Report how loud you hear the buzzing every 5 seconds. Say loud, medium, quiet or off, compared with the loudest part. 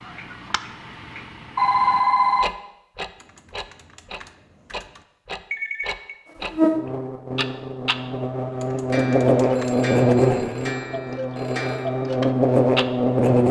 off, loud, loud.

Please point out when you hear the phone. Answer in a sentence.
The phone can be heard from 1.6 to 2.5 s, from 5.5 to 6.2 s and from 9.5 to 11.9 s.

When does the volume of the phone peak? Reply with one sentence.
The volume of the phone peaks at 2 seconds.